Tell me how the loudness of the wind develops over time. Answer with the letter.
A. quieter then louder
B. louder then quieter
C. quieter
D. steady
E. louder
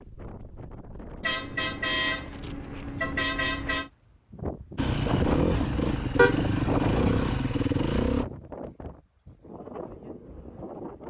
B.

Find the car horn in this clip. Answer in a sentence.
The car horn can be heard from 1.2 to 3.9 s and from 6.2 to 7.2 s.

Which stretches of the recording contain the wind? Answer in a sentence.
The wind can be heard from 0.0 to 11.0 s.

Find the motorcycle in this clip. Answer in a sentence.
The motorcycle can be heard from 4.8 to 8.2 s.